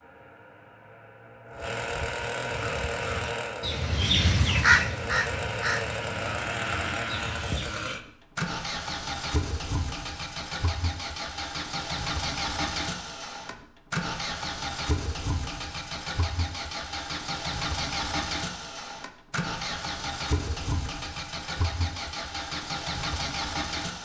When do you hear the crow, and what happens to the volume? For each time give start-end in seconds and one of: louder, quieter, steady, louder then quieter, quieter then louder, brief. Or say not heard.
2.5-7.7 louder then quieter.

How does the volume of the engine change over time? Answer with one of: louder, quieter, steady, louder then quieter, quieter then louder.
steady.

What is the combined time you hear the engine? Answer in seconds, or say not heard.
24 s.